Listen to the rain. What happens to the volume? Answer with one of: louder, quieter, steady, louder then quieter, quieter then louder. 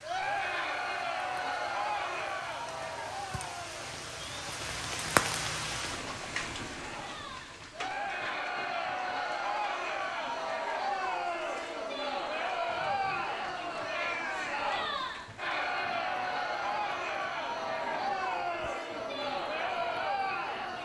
louder then quieter.